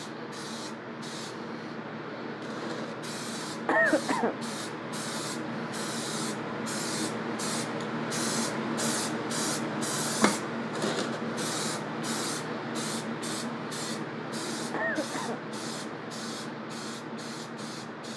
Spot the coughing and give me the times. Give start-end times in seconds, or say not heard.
3.6-4.4, 14.7-15.4.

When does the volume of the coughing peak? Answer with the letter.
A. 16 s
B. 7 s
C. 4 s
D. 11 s
C.